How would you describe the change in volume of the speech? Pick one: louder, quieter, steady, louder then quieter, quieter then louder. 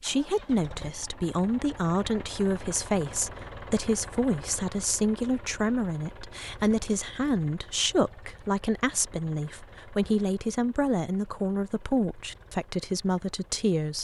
steady.